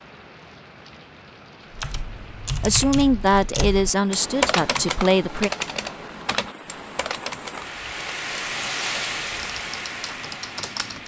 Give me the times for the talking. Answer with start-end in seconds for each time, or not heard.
2.6-5.5.